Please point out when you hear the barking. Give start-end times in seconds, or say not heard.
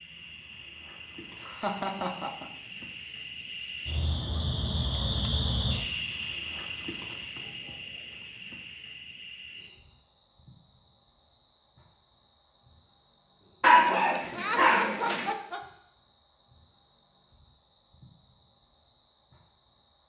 13.6-15.3.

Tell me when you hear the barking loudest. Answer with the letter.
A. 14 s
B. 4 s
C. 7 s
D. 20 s
A.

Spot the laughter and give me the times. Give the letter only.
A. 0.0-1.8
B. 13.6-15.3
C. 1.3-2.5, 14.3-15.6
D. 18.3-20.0
C.